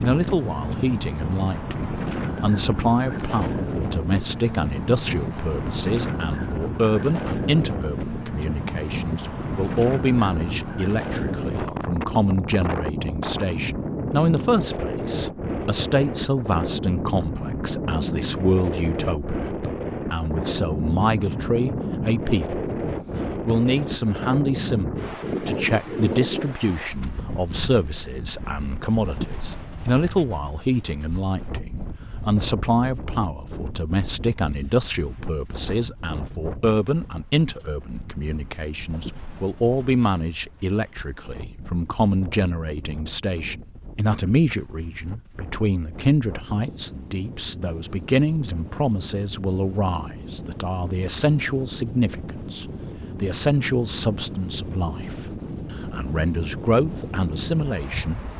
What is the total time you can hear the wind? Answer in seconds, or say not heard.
58 s.